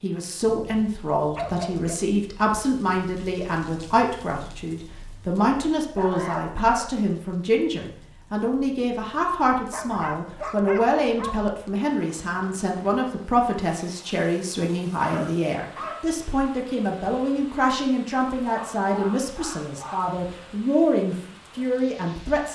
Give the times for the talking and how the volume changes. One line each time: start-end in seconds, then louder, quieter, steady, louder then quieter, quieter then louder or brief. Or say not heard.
0.0-22.5 steady.